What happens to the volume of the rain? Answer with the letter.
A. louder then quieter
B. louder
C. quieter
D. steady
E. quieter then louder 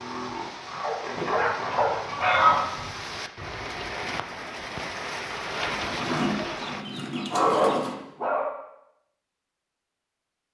B.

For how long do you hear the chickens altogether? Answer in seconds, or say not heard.
4 s.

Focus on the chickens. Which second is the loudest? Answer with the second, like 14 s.
2 s.